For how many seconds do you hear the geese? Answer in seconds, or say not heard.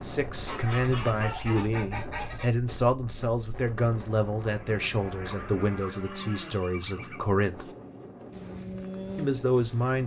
4 s.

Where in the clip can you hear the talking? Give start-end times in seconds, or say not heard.
0.0-7.7, 9.2-10.0.